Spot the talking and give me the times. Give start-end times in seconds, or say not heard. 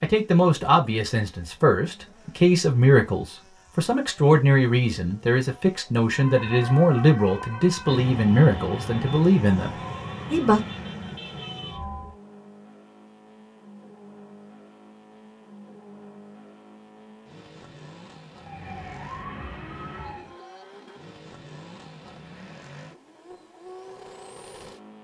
0.0-10.6.